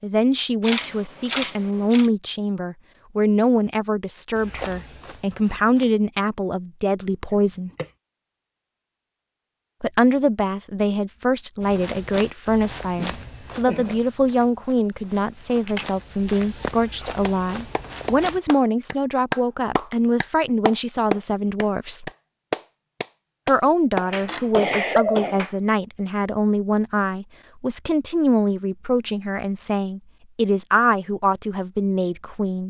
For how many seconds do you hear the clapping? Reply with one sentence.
The clapping can be heard for 8 seconds in total.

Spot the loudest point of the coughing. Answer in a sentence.
The loudest moment of the coughing is at 25 seconds.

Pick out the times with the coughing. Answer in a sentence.
The coughing can be heard from 12.9 to 14.1 s and from 23.9 to 25.4 s.